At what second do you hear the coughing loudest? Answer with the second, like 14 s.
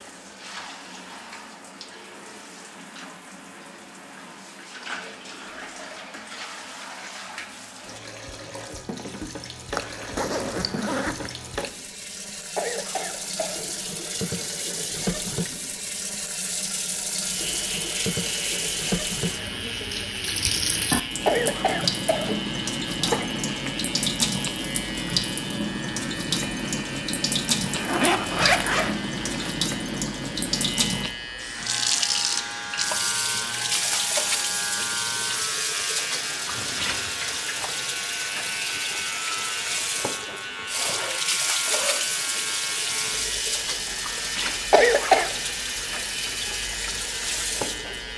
45 s.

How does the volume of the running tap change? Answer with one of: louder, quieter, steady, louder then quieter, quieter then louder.
louder.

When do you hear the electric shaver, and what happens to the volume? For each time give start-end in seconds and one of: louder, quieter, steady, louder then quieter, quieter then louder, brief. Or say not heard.
17.2-48.1 steady.